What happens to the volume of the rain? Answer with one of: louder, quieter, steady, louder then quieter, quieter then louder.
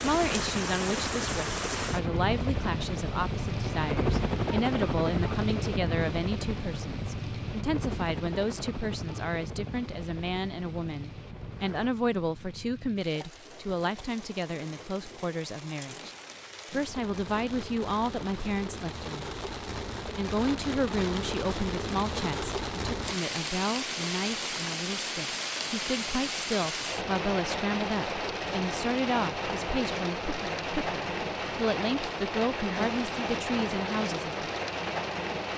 quieter then louder.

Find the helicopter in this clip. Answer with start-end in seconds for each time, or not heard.
0.0-11.9.